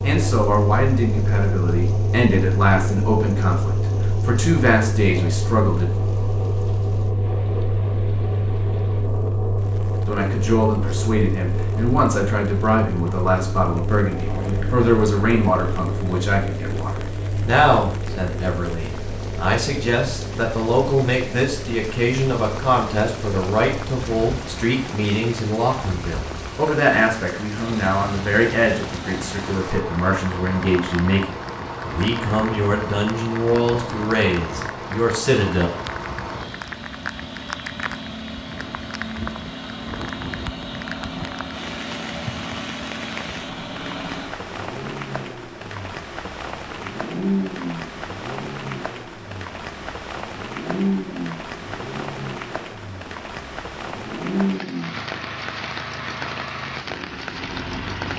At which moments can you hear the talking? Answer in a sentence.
You can hear the talking from 0.0 to 5.8 s and from 10.1 to 35.7 s.